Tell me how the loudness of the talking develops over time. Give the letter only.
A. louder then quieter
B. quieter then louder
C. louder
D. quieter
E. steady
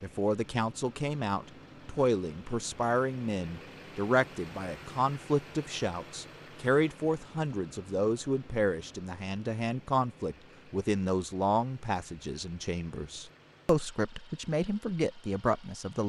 E.